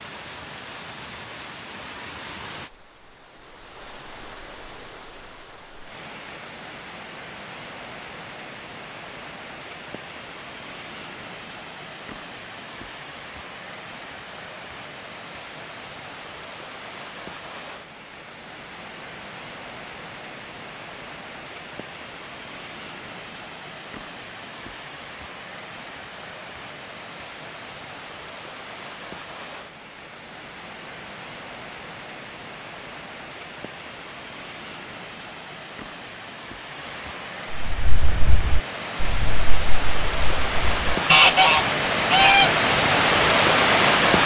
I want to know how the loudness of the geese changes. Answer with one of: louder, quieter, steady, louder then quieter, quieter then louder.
quieter then louder.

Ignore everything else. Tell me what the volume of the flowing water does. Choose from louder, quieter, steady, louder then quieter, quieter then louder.
louder.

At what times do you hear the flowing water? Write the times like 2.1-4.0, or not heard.
0.0-44.2.